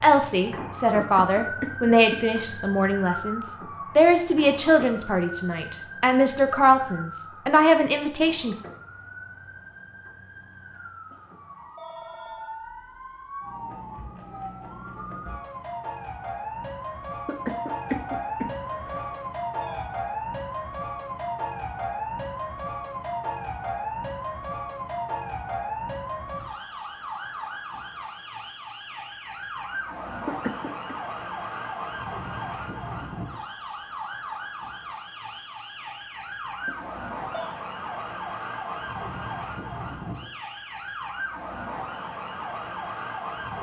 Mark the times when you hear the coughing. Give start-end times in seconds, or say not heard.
1.0-2.2, 17.2-19.1, 30.2-30.9.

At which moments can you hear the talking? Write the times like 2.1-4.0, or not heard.
0.0-8.6.